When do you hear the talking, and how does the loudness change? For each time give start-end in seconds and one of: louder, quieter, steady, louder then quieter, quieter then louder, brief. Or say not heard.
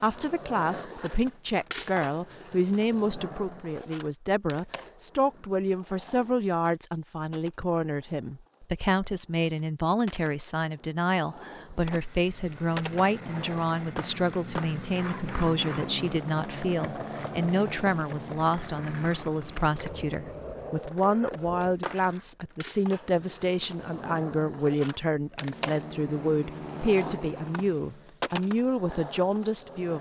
0.0-29.9 steady.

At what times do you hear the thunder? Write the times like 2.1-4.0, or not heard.
not heard.